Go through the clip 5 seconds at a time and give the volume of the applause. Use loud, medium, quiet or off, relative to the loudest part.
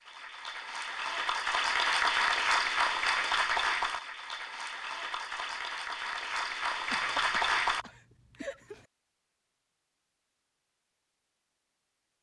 loud, loud, off.